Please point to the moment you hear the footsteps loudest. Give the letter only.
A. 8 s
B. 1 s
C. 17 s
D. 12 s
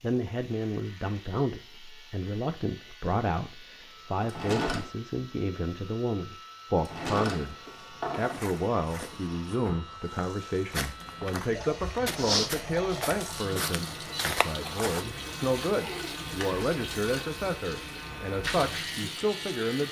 D.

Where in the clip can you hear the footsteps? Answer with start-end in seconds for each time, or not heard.
8.2-15.1.